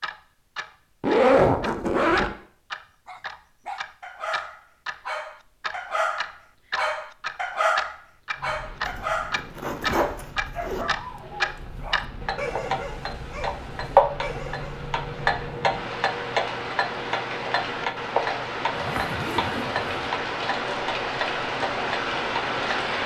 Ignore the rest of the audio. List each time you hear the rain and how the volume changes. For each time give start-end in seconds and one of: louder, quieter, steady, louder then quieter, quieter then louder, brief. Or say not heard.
8.3-23.0 louder.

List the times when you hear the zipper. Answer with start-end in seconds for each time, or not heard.
1.0-2.4, 8.8-10.8, 18.8-19.9.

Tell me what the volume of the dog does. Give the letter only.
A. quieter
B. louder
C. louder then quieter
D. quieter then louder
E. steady
C.